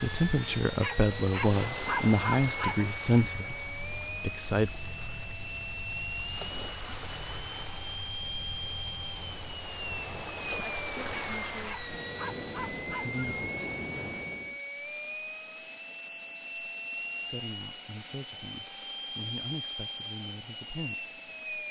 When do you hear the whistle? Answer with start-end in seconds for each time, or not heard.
not heard.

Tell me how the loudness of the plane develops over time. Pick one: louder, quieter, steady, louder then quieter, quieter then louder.
steady.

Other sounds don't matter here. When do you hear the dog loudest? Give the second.
2 s.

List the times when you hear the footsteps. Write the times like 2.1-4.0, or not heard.
not heard.